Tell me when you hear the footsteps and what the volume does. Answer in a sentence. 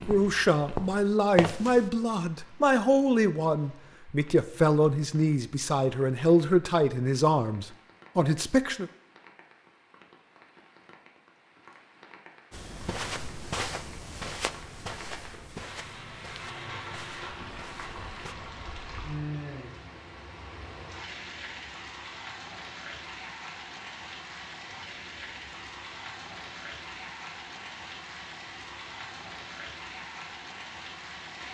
You can hear the footsteps briefly from 0.0 to 1.9 s; and from 12.5 to 18.4 s, getting quieter.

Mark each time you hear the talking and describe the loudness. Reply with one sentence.
You can hear the talking from 0.0 to 8.9 s, at a steady volume.